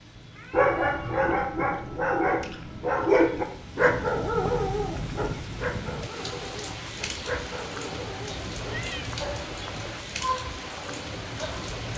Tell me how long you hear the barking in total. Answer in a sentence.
You can hear the barking for 11 seconds altogether.